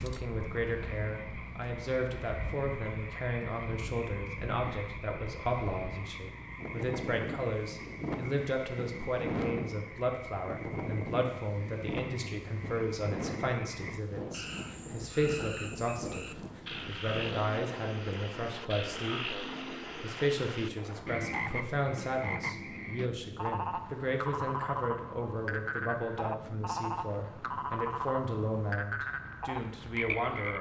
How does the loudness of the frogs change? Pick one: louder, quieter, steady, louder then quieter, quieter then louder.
louder.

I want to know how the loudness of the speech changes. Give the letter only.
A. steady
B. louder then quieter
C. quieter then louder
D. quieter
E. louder
A.